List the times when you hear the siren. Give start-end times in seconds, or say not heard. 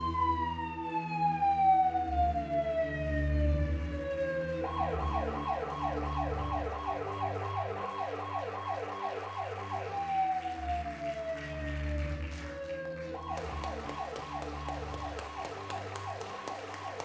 0.0-17.0.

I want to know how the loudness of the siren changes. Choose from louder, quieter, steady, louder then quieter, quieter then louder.
quieter.